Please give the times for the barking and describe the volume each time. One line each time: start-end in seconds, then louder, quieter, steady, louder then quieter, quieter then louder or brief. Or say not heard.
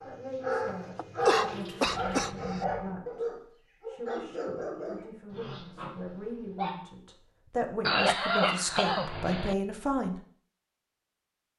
0.0-6.8 quieter.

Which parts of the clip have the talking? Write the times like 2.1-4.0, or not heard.
0.1-10.2.